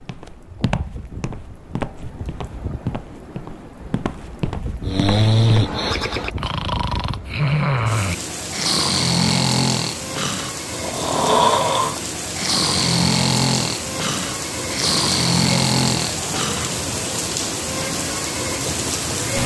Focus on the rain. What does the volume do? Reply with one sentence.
The volume of the rain goes up.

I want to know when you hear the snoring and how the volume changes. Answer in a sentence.
You can hear the snoring from 4.8 to 16.7 s, at a steady volume.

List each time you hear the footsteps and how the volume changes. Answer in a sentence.
The footsteps can be heard from 0.0 to 5.8 s, at a steady volume.